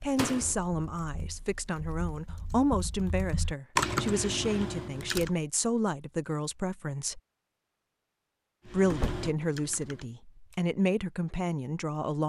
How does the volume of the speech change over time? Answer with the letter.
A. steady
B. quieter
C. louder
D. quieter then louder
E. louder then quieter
A.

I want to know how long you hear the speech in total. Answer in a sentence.
You can hear the speech for 11 seconds altogether.